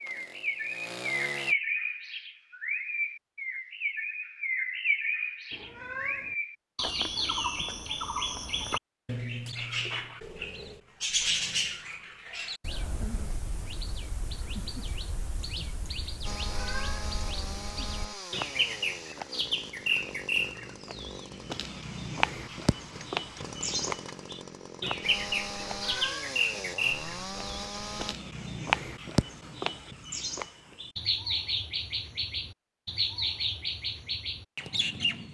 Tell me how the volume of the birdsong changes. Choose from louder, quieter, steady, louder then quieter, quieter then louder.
steady.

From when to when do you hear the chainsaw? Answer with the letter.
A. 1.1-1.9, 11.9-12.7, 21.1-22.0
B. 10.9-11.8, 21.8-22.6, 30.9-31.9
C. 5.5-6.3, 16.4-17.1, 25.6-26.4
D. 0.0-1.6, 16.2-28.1
D.